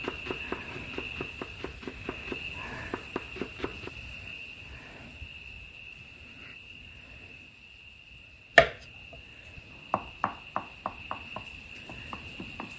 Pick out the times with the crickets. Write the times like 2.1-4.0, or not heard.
0.0-12.7.